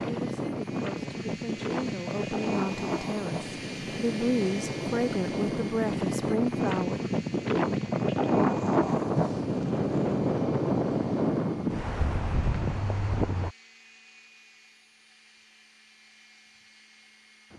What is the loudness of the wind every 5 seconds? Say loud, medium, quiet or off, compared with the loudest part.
medium, loud, loud, off.